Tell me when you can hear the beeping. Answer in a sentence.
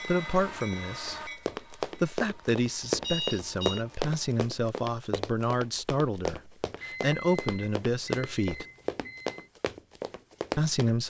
The beeping can be heard from 3.0 to 3.9 s and from 6.8 to 9.5 s.